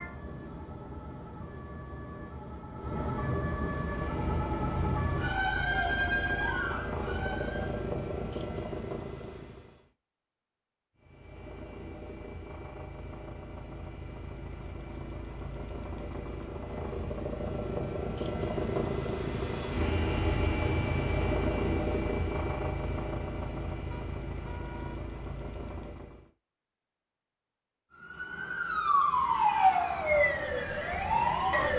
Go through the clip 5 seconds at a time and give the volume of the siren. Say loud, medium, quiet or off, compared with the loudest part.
medium, medium, off, off, off, loud, loud.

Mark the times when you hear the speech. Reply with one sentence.
You can't hear the speech here.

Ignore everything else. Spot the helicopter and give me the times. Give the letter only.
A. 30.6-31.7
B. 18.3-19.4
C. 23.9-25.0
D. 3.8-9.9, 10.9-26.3
D.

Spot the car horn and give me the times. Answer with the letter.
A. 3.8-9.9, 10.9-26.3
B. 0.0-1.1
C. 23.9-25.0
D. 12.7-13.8
C.